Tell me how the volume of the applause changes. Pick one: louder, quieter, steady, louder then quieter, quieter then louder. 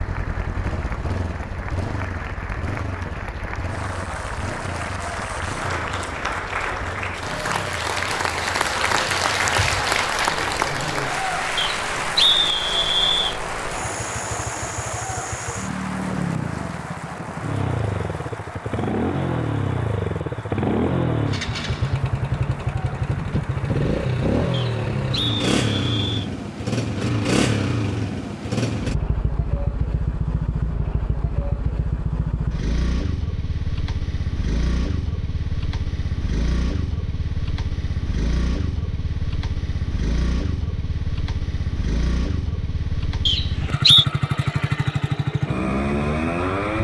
louder then quieter.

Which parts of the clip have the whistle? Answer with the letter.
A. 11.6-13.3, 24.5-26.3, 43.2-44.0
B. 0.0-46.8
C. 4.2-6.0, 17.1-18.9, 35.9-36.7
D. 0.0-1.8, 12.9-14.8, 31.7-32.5
A.